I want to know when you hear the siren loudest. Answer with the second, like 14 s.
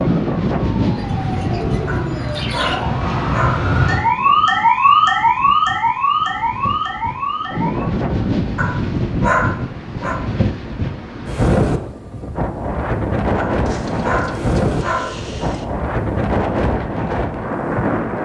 5 s.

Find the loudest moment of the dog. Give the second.
9 s.